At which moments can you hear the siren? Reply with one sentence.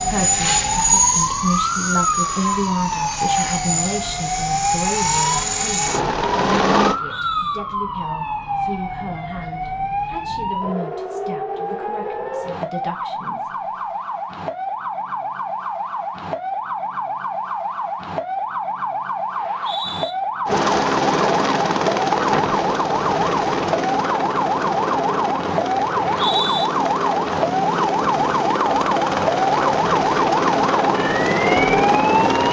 The siren can be heard from 0.0 to 32.4 s.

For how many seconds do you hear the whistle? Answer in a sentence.
You can hear the whistle for 2 seconds altogether.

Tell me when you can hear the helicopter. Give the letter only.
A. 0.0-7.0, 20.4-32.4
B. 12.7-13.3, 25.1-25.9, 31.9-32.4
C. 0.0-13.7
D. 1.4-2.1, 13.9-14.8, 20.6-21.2
A.